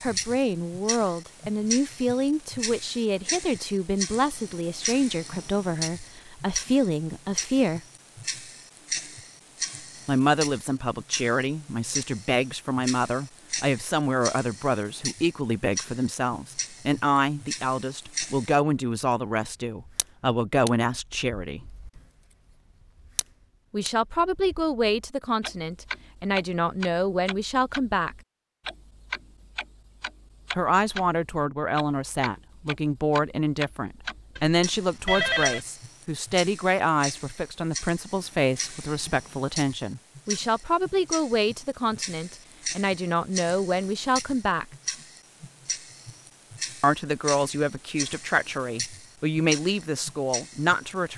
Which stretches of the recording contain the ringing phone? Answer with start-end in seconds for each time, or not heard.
34.4-35.6.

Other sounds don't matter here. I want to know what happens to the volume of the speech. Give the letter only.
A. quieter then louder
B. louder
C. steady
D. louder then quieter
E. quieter
C.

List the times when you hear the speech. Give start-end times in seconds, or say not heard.
0.0-7.8, 10.1-21.6, 23.7-28.1, 30.6-44.6, 46.8-51.1.